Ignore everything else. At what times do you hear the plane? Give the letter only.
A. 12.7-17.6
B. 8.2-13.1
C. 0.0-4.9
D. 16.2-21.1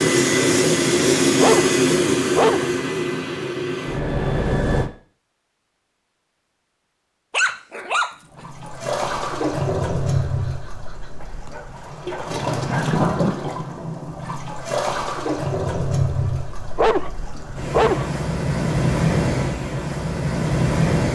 C.